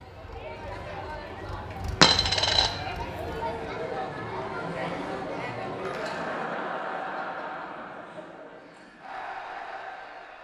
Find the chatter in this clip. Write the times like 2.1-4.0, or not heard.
0.0-10.4.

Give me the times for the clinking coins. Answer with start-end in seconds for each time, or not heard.
2.0-2.7, 5.8-6.2.